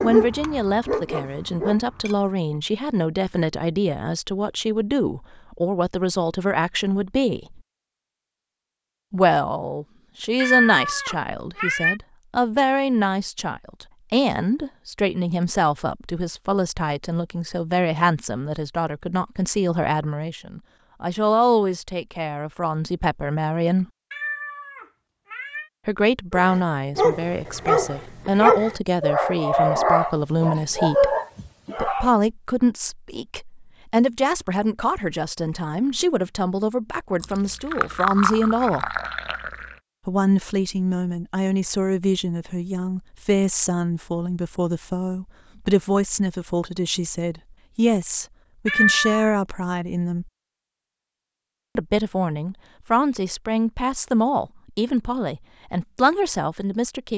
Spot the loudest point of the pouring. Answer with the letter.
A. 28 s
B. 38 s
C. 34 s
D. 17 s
B.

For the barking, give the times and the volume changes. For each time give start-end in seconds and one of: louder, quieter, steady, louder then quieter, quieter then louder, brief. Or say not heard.
0.0-2.1 brief
26.3-32.1 steady.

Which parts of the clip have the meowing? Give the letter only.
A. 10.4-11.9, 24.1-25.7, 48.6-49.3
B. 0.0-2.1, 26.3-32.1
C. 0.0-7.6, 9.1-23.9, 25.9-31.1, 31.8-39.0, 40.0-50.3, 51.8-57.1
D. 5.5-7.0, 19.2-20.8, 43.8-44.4
A.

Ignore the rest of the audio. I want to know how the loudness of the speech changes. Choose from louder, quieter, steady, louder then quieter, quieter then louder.
steady.